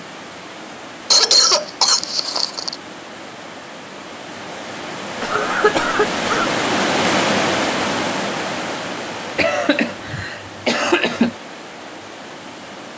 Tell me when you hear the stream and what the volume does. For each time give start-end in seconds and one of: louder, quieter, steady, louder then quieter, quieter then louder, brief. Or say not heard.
0.0-12.9 louder then quieter.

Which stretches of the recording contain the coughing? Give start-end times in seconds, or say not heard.
1.1-2.8, 5.2-6.5, 9.3-11.3.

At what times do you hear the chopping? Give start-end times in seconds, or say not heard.
not heard.